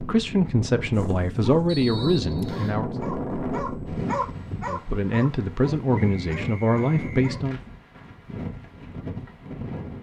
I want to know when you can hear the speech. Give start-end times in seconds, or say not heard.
0.0-3.0, 4.7-7.6.